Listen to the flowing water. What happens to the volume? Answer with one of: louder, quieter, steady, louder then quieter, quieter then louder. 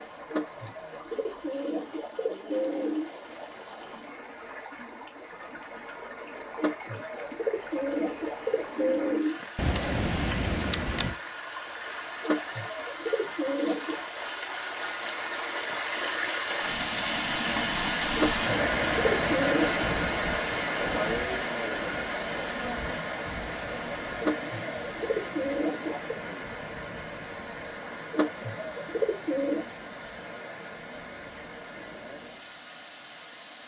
louder then quieter.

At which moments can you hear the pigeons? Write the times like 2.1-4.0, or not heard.
0.3-3.1, 6.5-9.4, 12.2-14.0, 18.1-19.9, 24.2-26.2, 28.1-29.6.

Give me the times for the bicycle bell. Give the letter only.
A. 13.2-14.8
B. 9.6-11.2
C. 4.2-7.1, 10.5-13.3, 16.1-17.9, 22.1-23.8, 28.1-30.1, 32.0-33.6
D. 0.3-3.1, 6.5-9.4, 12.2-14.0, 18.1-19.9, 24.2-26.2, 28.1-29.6
B.